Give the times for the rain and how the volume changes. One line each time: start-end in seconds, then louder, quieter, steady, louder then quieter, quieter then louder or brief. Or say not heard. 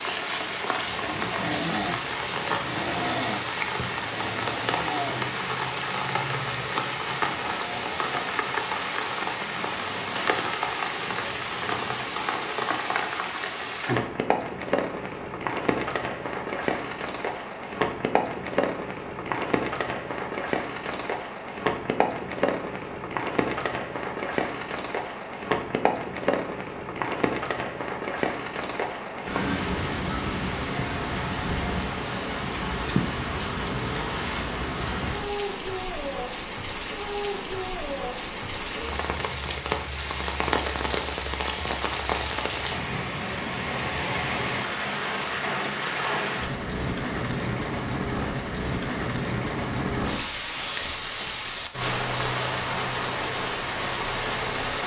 0.0-54.8 steady.